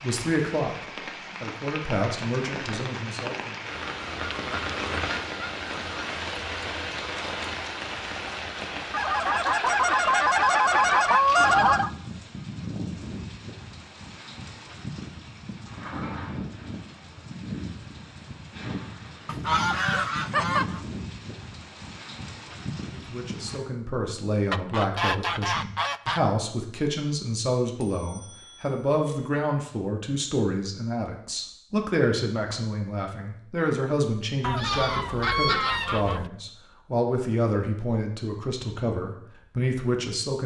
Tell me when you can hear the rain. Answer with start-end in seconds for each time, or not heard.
0.0-23.6.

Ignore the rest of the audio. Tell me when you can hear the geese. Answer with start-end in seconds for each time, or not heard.
4.0-6.2, 8.9-11.9, 19.2-20.8, 24.5-26.2, 34.4-36.3.